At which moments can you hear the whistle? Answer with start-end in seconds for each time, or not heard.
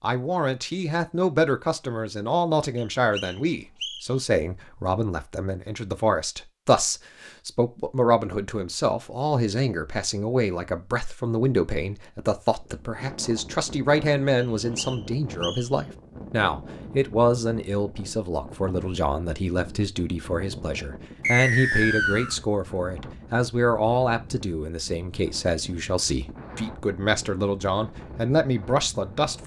2.8-4.0, 14.4-15.7, 21.2-22.4.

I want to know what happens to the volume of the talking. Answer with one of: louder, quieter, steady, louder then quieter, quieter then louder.
steady.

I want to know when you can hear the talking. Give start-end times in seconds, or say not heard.
0.0-29.4.